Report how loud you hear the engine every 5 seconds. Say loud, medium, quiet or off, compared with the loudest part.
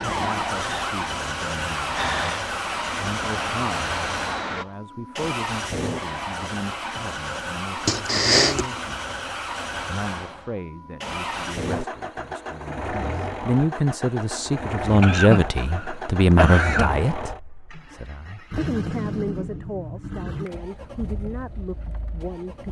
loud, loud, loud, loud, medium.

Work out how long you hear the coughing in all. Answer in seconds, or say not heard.
3 s.